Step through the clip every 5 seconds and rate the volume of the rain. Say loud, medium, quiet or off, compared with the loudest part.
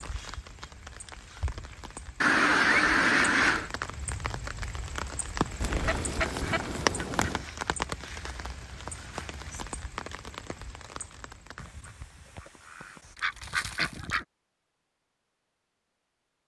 medium, loud, medium, off.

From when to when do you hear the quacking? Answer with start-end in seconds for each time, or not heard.
2.2-3.7, 5.6-7.5, 11.6-14.2.